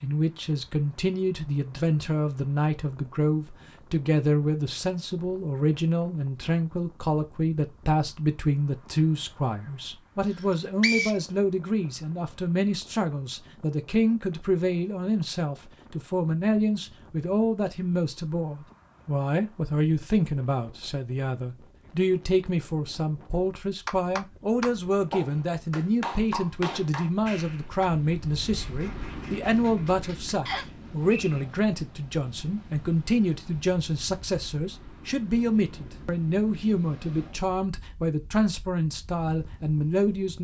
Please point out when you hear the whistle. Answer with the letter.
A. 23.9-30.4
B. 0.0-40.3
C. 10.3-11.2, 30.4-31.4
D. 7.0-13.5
C.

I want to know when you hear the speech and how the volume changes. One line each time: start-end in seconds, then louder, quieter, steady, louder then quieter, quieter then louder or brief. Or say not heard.
0.0-40.3 steady.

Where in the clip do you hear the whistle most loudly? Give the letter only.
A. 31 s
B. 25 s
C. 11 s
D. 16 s
C.